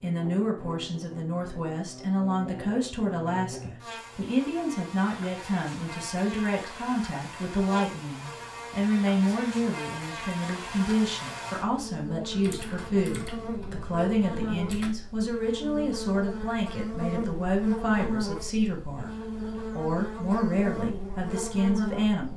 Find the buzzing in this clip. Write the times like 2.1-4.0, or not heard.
0.0-22.3.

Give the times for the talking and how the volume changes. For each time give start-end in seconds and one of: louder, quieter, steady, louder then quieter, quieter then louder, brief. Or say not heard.
0.0-22.3 steady.